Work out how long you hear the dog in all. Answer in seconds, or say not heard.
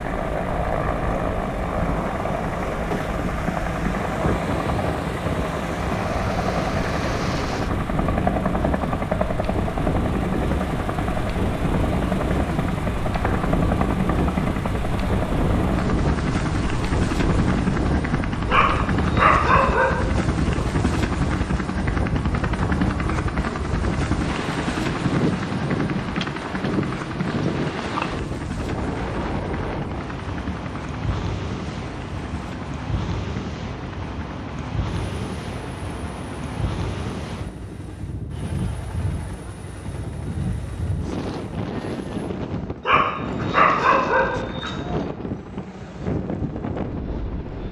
3 s.